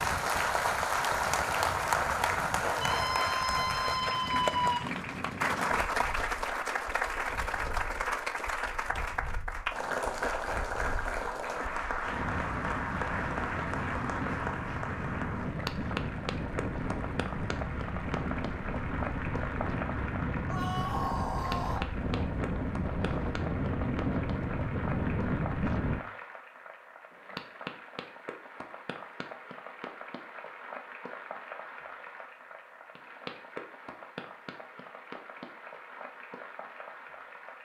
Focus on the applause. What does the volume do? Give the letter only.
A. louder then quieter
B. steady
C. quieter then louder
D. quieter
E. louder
D.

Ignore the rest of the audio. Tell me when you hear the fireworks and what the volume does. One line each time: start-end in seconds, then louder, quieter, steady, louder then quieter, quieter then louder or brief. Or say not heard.
not heard.